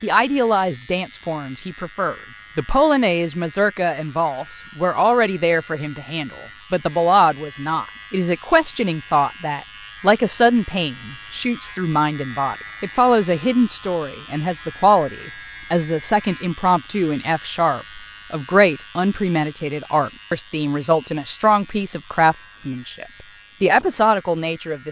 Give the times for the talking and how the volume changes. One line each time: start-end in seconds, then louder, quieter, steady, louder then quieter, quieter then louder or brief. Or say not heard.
0.0-24.8 steady.